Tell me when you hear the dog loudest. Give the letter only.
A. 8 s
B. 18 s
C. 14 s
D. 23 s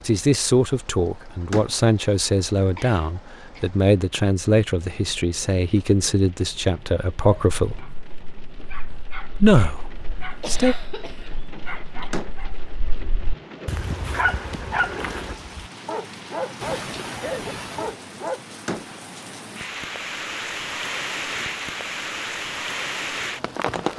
C.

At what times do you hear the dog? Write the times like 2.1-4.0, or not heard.
7.2-18.4.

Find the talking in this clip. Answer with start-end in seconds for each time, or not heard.
0.1-7.8, 9.3-10.8.